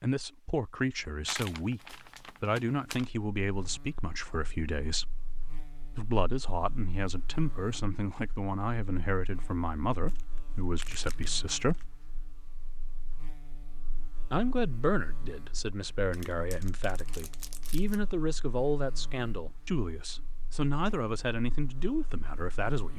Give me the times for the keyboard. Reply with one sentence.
You can't hear the keyboard here.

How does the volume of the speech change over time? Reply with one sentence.
The volume of the speech stays about the same.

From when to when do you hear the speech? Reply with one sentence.
The speech can be heard from 0.0 to 5.2 s, from 6.0 to 11.9 s and from 14.3 to 22.9 s.